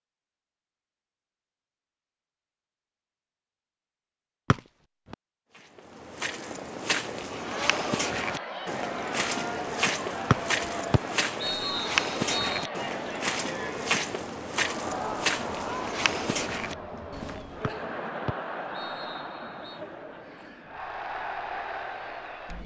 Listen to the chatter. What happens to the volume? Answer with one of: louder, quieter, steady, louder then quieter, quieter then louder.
steady.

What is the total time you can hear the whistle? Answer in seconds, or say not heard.
5 s.